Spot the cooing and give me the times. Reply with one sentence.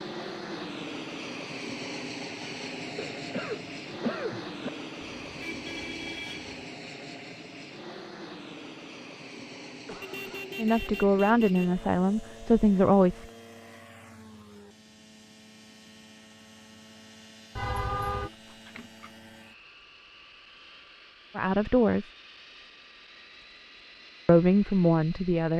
You can't hear the cooing here.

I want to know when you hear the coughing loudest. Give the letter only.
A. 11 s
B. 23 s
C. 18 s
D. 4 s
D.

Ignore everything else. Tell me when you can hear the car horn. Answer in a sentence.
You can hear the car horn from 5.2 to 6.7 s, from 10.0 to 11.8 s and from 17.6 to 18.3 s.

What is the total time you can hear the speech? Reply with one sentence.
The speech can be heard for 5 seconds in total.